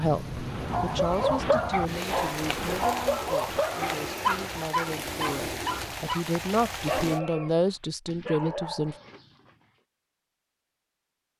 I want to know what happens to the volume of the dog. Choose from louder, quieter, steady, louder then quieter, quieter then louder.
quieter.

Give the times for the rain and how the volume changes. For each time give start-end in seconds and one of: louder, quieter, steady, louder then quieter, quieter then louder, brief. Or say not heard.
0.0-7.2 steady.